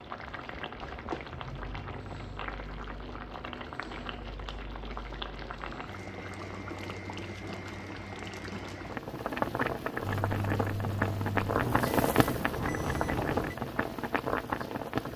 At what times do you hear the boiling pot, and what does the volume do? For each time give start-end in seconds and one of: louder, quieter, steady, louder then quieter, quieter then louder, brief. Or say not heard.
0.0-15.1 louder.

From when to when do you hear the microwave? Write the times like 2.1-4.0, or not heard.
10.0-13.7.